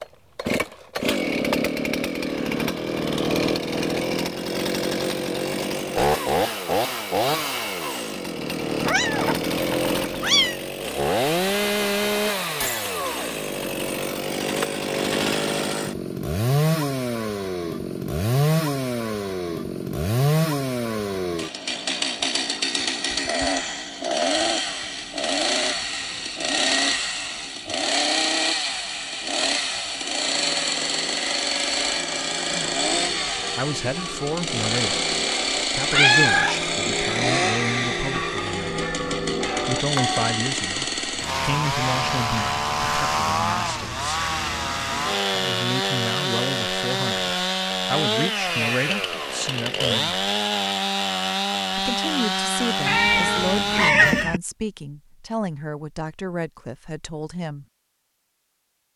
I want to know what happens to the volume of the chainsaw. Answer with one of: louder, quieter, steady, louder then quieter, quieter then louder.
steady.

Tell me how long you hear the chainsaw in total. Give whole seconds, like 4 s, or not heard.
54 s.